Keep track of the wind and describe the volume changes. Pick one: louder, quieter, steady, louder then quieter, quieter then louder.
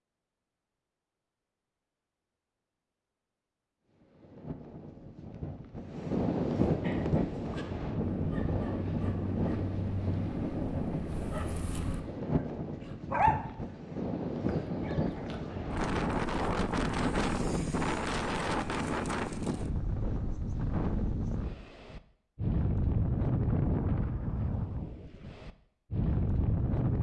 steady.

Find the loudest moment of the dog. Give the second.
13 s.